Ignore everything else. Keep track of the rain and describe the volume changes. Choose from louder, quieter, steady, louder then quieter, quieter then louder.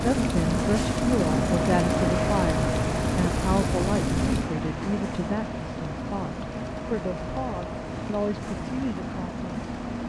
quieter.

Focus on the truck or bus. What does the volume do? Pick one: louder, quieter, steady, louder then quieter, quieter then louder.
quieter.